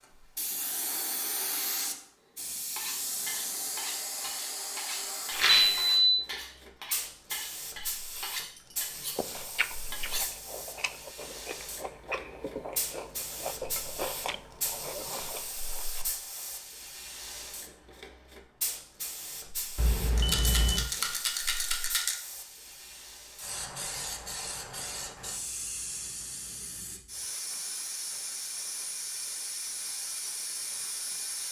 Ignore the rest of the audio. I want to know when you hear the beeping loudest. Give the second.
6 s.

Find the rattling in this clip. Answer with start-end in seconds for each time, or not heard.
5.3-5.8, 20.1-22.1.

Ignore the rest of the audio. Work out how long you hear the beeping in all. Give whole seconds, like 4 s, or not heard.
2 s.